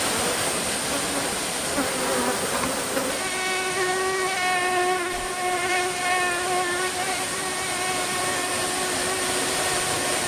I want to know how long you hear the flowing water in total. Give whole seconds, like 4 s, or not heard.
10 s.